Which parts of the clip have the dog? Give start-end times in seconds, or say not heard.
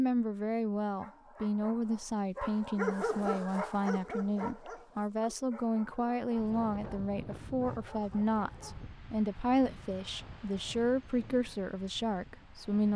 0.9-8.9.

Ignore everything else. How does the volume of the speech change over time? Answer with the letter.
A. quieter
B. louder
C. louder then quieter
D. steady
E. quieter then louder
D.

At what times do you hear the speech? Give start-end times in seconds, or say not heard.
0.0-12.9.